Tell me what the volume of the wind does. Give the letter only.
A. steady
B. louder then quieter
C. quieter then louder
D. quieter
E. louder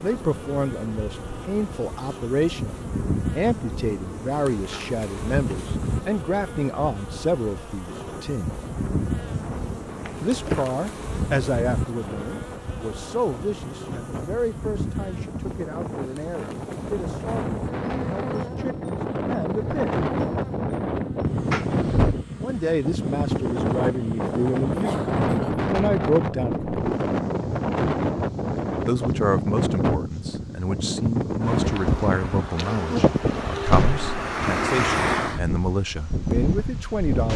E.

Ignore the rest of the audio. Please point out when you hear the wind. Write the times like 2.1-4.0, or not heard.
0.0-37.3.